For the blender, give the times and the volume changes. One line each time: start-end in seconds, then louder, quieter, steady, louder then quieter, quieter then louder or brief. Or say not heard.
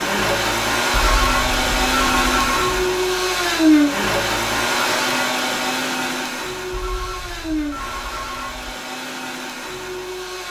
0.0-10.4 quieter.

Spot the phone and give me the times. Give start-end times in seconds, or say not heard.
0.9-2.8, 6.7-8.8.